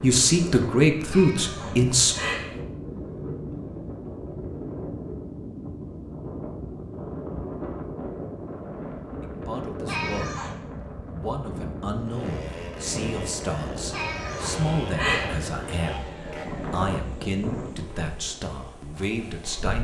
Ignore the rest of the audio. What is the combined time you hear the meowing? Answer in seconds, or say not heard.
4 s.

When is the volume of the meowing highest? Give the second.
15 s.